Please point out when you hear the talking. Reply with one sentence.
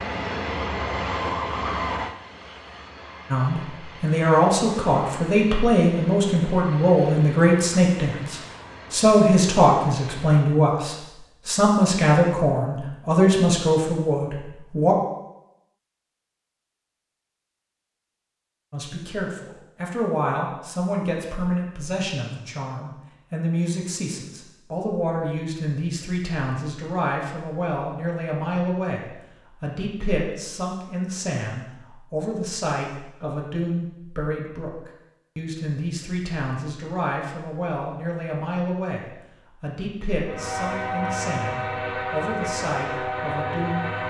You can hear the talking from 3.3 to 14.9 s and from 18.7 to 44.0 s.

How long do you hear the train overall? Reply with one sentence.
You can hear the train for 14 seconds altogether.